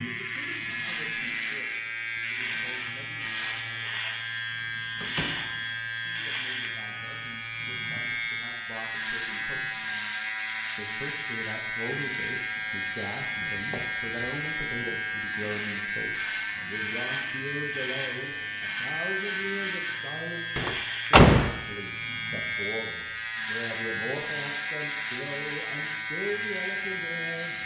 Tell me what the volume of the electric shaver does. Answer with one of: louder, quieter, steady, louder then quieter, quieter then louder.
steady.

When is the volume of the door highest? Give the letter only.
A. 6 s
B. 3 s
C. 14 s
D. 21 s
D.